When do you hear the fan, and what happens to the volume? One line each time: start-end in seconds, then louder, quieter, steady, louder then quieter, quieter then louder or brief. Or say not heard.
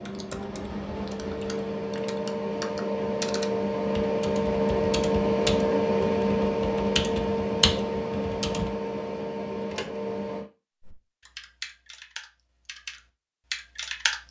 0.0-10.4 louder then quieter.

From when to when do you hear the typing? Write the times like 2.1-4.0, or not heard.
0.0-8.7, 10.8-14.2.